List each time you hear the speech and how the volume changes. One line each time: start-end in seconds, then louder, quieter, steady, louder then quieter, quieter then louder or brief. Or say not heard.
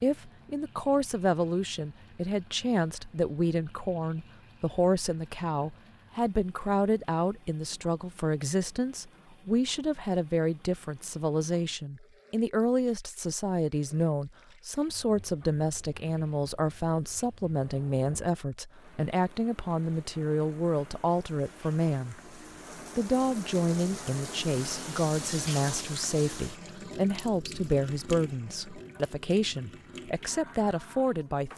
0.0-22.2 steady
22.9-31.5 steady.